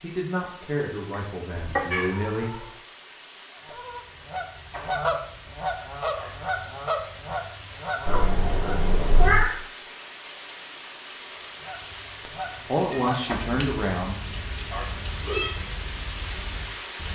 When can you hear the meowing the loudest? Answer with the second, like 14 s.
9 s.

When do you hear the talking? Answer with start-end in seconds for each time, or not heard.
0.0-2.5, 12.7-14.2.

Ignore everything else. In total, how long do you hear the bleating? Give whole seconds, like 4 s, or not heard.
not heard.